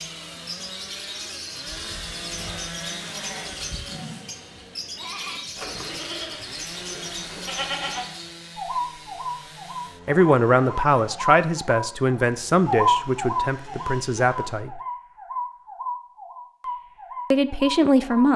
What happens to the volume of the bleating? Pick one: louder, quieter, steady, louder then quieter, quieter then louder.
louder.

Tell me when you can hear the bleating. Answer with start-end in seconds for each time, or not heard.
1.6-8.1.